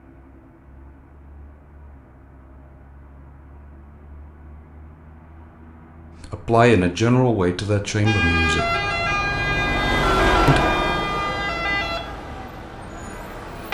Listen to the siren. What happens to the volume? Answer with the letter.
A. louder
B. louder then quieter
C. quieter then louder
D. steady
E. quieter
E.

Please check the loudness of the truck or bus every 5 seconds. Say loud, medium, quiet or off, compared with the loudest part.
quiet, medium, loud.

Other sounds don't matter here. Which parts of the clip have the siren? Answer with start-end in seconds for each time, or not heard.
8.1-13.6.